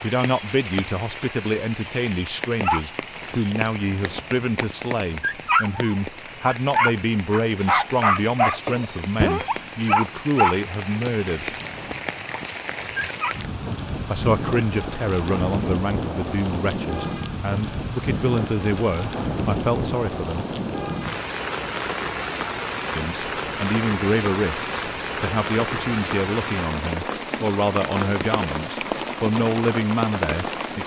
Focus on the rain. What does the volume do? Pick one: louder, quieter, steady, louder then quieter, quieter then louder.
louder.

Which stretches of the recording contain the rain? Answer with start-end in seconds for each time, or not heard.
0.0-30.8.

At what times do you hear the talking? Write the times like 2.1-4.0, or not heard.
0.0-11.4, 14.1-20.4, 22.9-30.8.